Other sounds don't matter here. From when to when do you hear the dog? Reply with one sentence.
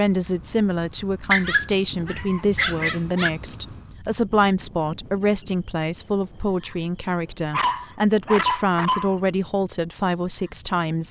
The dog can be heard from 1.3 to 3.3 s and from 7.5 to 9.2 s.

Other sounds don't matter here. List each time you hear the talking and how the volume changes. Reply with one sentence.
You can hear the talking from 0.0 to 11.0 s, at a steady volume.